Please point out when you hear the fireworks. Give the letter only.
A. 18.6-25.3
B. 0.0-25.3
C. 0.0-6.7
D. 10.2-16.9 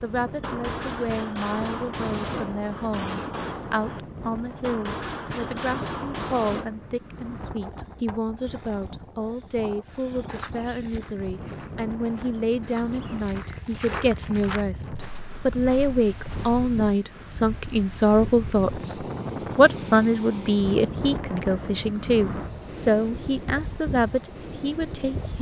C.